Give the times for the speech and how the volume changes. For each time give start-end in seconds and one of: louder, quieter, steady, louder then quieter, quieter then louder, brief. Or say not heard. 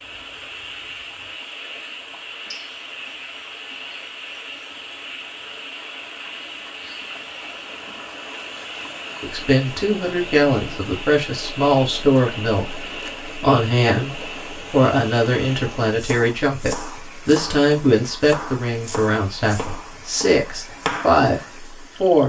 9.2-22.2 steady.